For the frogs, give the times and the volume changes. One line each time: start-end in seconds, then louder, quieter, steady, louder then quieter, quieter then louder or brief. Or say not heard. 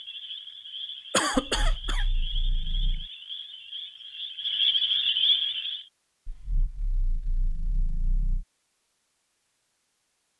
0.0-5.8 louder.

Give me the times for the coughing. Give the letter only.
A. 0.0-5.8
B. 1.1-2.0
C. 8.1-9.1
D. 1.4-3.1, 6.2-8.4
B.